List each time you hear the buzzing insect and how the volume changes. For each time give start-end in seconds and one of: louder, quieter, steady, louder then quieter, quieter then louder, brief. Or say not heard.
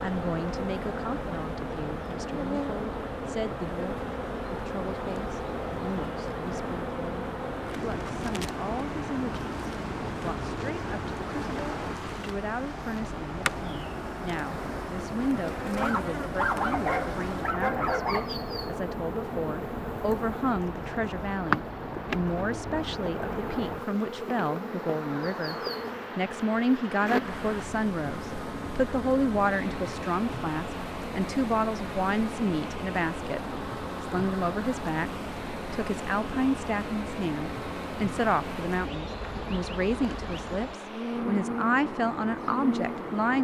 0.0-43.1 steady.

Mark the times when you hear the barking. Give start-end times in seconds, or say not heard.
15.8-18.3.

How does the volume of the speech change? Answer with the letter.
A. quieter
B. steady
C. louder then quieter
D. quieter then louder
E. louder
E.